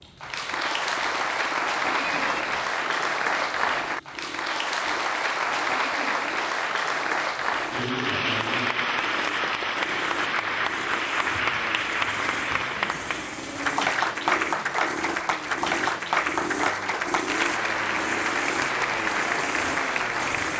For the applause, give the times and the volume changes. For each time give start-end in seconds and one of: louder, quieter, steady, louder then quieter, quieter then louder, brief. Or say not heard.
0.0-20.5 steady.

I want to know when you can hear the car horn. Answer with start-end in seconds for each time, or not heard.
2.0-2.7.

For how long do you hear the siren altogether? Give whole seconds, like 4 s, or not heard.
not heard.